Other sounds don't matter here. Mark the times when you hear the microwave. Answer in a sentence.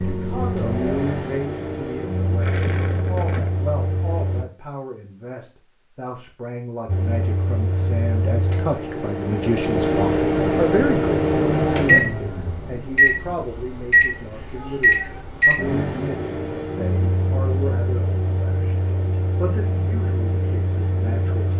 You can hear the microwave from 0.0 to 4.5 s and from 6.8 to 21.5 s.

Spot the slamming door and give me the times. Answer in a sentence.
You can't hear the slamming door here.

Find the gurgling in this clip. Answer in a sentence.
The gurgling can be heard from 2.4 to 3.5 s.